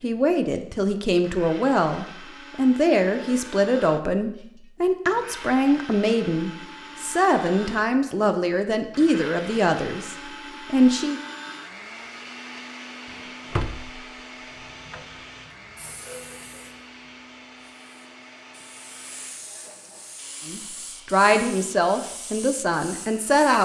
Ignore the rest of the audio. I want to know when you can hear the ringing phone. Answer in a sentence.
The ringing phone can't be heard in this clip.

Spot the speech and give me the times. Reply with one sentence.
The speech can be heard from 0.0 to 11.2 s and from 20.4 to 23.6 s.